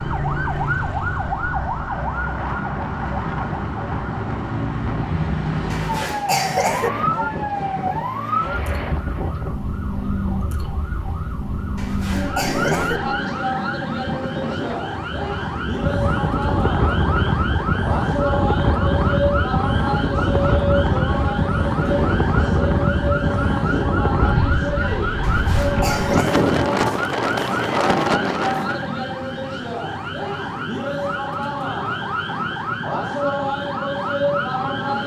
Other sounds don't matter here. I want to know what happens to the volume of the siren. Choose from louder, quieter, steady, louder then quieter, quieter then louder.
steady.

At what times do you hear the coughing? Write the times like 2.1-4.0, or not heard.
5.7-6.9, 11.8-13.0, 25.2-26.4.